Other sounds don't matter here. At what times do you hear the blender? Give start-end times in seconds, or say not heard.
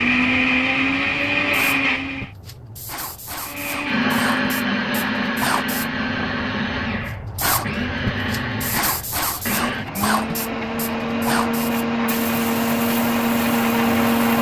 0.0-2.3, 3.5-14.3.